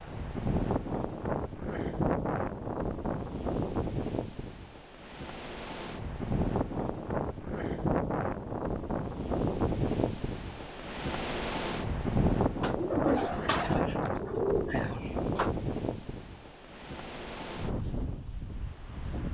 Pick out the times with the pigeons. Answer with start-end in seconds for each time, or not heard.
12.6-15.5.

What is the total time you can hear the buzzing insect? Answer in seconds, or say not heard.
not heard.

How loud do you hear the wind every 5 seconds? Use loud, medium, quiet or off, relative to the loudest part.
loud, loud, loud, medium.